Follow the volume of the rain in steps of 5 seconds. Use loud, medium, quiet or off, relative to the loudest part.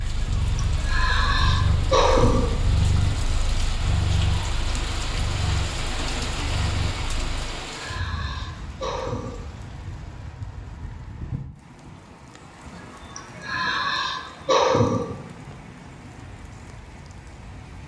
loud, loud, medium, medium.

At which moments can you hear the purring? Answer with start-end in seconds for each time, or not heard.
0.0-7.6.